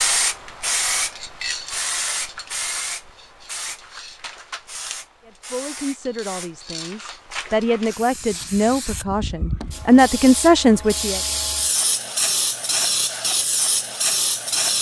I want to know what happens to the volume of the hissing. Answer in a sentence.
The volume of the hissing goes down, then up.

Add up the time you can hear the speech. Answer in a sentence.
The speech can be heard for 6 seconds in total.